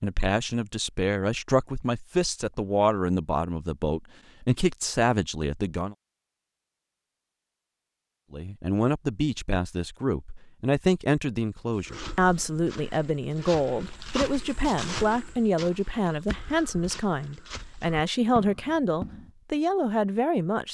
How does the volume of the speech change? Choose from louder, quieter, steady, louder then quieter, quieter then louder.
steady.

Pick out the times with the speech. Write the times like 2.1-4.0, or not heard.
0.0-6.0, 8.3-20.7.